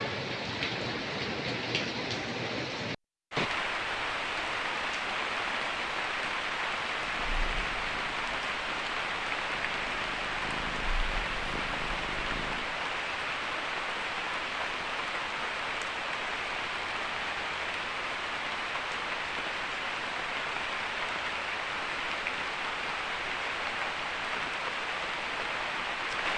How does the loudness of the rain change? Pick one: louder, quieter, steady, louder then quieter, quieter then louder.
steady.